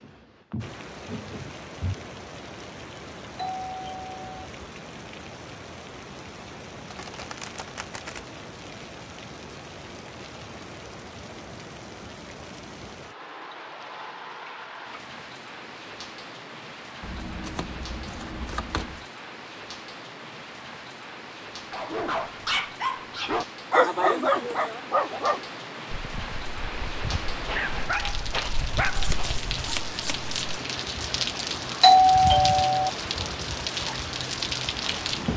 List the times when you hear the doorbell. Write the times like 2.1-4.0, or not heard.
3.4-4.5, 31.8-32.9.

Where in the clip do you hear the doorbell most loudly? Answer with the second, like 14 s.
32 s.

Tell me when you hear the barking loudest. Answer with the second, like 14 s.
24 s.